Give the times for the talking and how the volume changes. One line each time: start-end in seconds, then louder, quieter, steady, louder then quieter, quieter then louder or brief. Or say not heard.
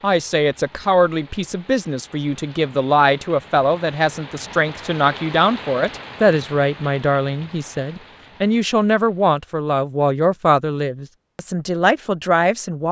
0.0-12.8 steady.